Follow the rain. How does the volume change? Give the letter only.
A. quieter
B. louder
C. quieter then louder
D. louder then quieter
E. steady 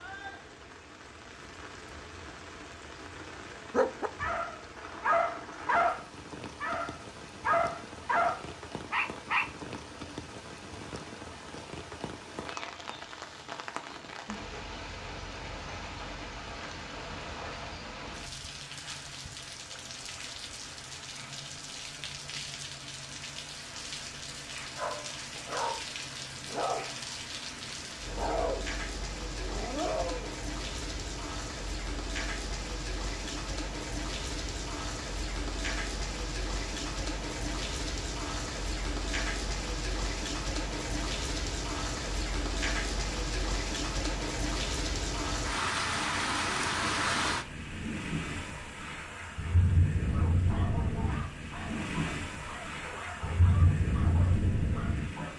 B.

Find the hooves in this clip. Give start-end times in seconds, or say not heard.
not heard.